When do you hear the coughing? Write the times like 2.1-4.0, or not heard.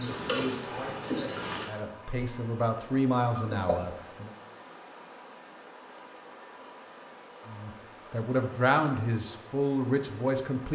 3.4-4.0.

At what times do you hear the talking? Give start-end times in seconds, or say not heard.
0.0-4.3, 7.5-10.7.